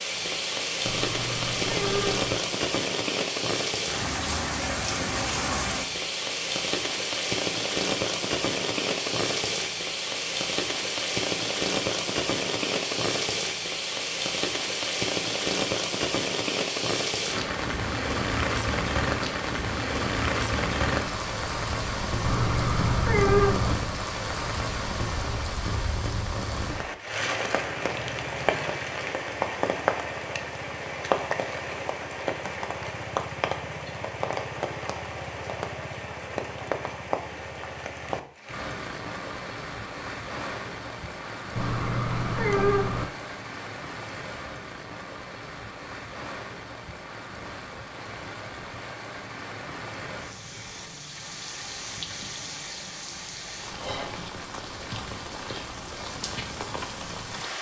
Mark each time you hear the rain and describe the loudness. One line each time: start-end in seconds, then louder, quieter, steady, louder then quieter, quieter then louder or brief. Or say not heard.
0.0-57.5 quieter.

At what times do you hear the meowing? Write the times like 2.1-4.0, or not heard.
0.8-2.4, 22.2-23.8, 41.5-43.0.